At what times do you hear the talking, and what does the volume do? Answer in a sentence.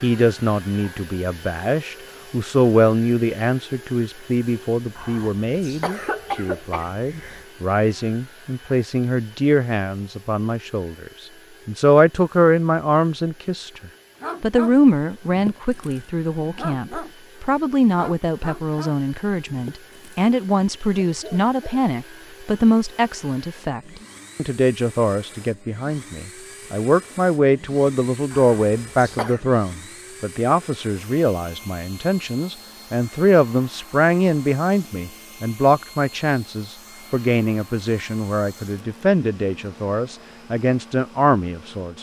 You can hear the talking from 0.0 to 41.9 s, at a steady volume.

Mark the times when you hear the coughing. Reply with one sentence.
The coughing can be heard from 5.0 to 7.5 s and from 28.3 to 29.4 s.